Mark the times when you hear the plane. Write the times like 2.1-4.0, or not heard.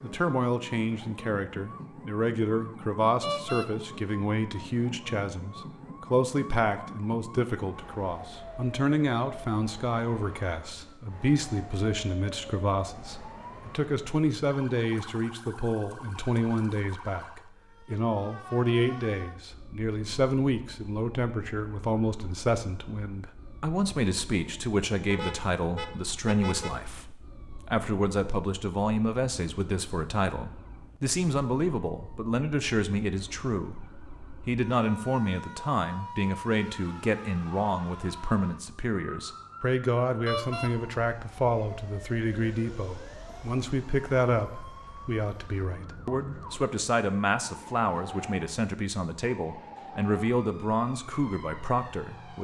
not heard.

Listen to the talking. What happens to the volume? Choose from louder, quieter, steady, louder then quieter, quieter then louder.
steady.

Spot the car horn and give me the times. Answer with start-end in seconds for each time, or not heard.
3.2-3.7, 25.1-26.8, 40.2-40.7.